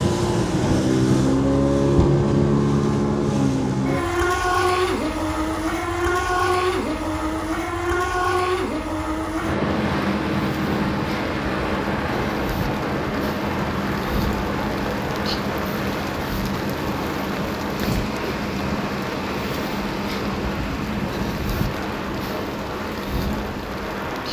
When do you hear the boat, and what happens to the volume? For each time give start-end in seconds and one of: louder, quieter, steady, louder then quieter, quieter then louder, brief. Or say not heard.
0.0-24.2 quieter.